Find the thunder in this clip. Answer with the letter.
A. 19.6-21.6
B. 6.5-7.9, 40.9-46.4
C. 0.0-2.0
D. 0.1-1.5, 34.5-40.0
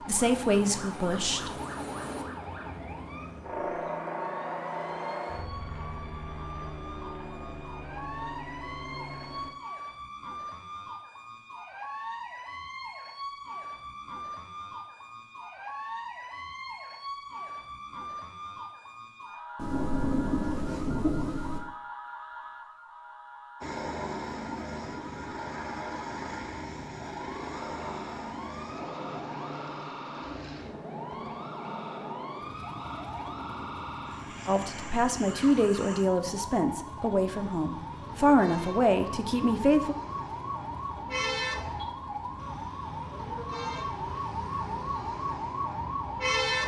A.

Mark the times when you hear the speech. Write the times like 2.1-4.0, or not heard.
0.1-1.5, 34.5-40.0.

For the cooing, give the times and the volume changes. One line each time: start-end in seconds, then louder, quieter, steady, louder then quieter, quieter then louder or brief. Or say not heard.
not heard.